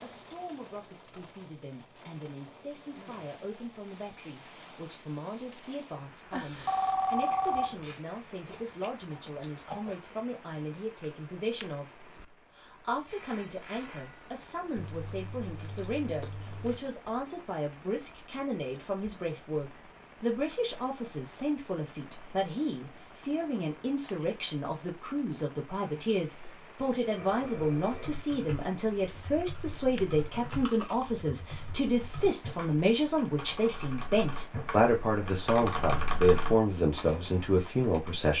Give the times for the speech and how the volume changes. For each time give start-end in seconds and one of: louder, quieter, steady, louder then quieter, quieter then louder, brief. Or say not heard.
0.0-38.3 louder.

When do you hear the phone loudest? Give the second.
7 s.